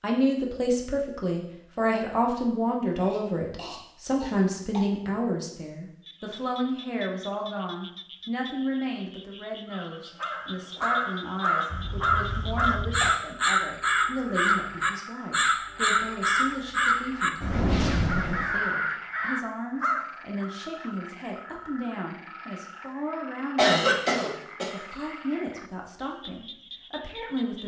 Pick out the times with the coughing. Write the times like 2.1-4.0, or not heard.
3.0-4.8, 11.7-13.2, 23.6-24.7.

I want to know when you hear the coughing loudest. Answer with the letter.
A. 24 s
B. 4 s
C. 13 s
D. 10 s
A.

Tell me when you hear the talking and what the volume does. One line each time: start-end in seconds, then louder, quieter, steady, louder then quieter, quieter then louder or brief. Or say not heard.
0.0-27.6 quieter.